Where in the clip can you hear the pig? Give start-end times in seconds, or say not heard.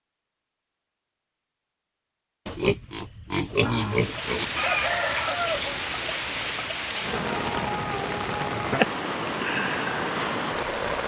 2.5-4.5.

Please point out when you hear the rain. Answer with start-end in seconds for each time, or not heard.
3.8-11.0.